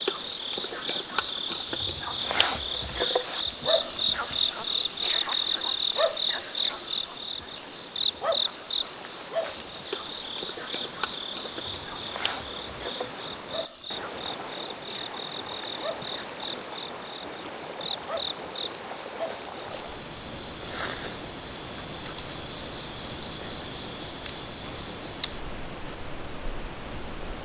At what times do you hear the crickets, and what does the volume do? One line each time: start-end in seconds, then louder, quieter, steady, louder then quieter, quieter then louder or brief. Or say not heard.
0.0-27.2 quieter.